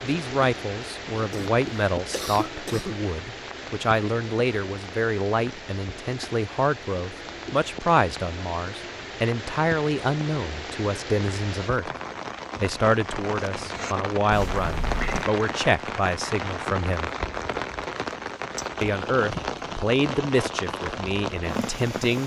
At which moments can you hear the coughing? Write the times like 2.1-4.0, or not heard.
1.2-3.0, 14.3-15.3.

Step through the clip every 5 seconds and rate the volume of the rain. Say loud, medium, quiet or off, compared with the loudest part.
medium, medium, loud, loud, loud.